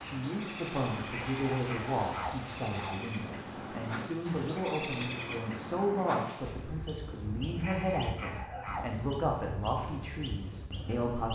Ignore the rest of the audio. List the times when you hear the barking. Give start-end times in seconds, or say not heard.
1.0-3.0, 7.5-8.9.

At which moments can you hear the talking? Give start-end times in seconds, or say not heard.
0.0-11.2.